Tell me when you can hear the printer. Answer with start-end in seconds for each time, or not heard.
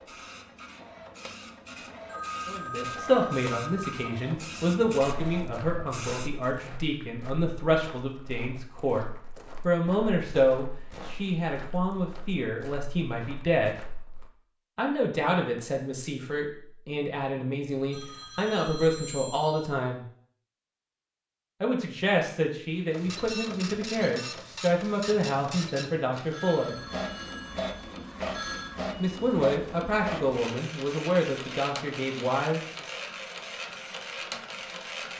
0.0-6.5, 22.7-35.1.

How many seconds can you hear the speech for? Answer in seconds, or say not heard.
26 s.